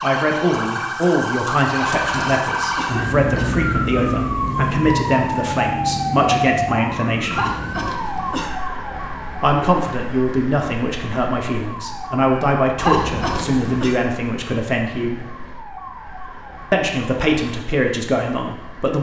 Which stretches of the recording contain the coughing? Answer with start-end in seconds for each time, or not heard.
1.8-3.5, 7.3-8.5, 12.8-14.0.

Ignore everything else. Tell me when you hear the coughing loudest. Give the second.
13 s.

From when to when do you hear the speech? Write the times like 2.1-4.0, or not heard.
0.0-7.5, 9.4-15.2, 16.7-18.9.